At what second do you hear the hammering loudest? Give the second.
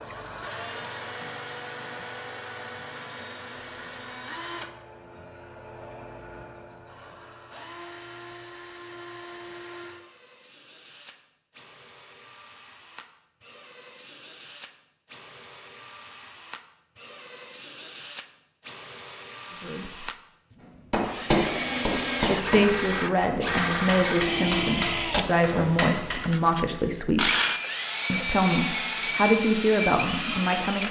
21 s.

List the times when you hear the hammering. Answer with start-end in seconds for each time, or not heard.
20.9-26.2.